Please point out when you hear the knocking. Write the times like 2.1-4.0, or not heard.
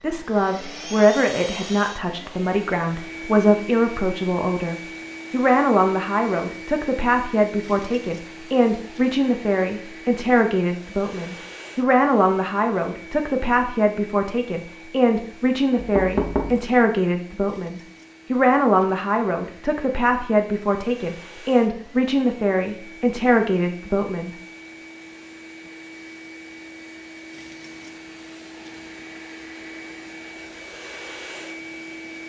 15.8-16.6.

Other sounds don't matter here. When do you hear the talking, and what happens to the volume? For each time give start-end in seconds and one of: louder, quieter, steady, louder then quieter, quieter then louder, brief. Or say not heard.
0.0-24.4 steady.